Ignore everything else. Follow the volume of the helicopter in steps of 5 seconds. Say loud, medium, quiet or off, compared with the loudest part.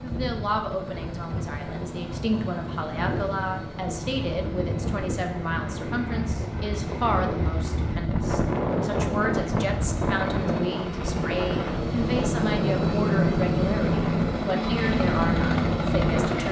quiet, quiet, loud, loud.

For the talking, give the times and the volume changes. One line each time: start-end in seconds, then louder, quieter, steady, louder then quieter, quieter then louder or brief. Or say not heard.
0.0-16.4 steady.